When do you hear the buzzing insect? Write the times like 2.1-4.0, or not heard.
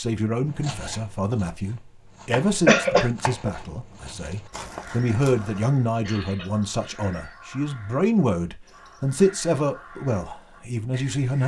not heard.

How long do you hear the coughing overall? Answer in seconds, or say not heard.
2 s.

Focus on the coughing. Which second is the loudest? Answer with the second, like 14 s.
3 s.